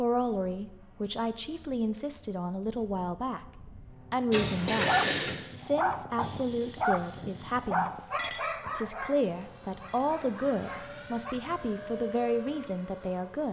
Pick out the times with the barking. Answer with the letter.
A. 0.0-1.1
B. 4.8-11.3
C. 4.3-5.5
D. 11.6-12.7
B.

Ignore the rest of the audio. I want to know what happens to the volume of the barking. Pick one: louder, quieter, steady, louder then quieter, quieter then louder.
quieter.